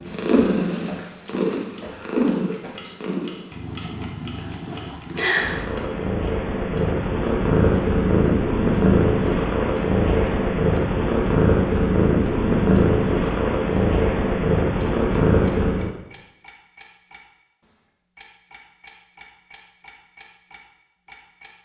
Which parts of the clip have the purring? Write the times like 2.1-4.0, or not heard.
0.0-15.9.